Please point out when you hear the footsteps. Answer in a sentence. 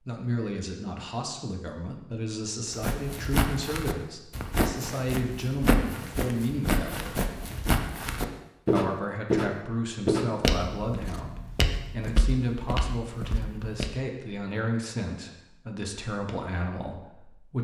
The footsteps can be heard from 2.7 to 13.9 s.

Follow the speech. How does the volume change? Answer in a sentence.
The volume of the speech stays about the same.